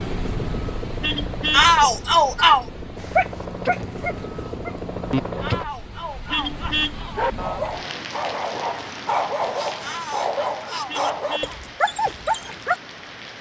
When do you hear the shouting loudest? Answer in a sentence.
The loudest moment of the shouting is at 2 seconds.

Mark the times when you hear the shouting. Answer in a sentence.
You can hear the shouting from 1.5 to 2.6 s, from 5.4 to 7.3 s and from 9.8 to 11.6 s.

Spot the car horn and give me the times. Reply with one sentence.
You can hear the car horn from 1.0 to 1.7 s, from 6.2 to 7.0 s and from 10.8 to 11.6 s.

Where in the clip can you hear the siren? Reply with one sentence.
You can't hear the siren here.